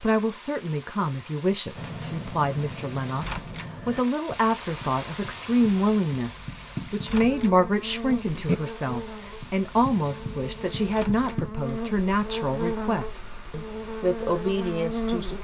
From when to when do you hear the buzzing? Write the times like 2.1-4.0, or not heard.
7.1-15.3.